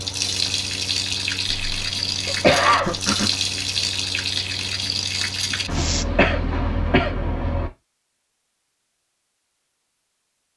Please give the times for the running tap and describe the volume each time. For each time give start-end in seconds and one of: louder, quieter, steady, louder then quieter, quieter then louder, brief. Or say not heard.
0.0-6.0 steady.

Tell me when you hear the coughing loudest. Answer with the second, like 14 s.
3 s.